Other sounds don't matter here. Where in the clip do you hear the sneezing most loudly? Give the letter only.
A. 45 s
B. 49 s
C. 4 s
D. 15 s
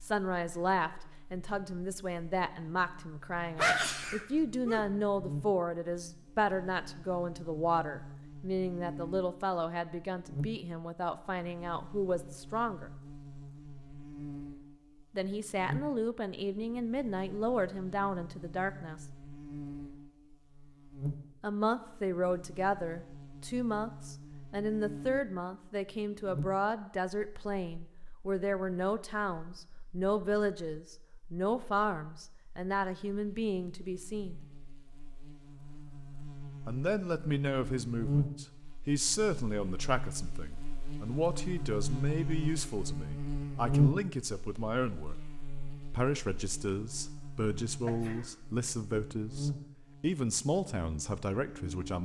C.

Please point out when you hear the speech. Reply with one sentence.
You can hear the speech from 0.0 to 12.9 s, from 15.1 to 19.1 s, from 21.4 to 34.4 s, from 36.6 to 45.1 s and from 45.8 to 52.0 s.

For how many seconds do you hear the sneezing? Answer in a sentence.
The sneezing can be heard for 2 seconds in total.